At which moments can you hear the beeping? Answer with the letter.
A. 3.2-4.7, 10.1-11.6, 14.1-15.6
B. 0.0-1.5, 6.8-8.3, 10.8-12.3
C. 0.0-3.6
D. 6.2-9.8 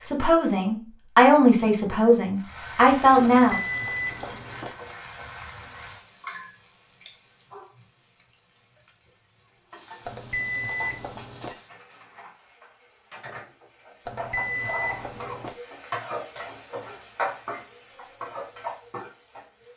A.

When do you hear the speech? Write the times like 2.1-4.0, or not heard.
0.0-3.6.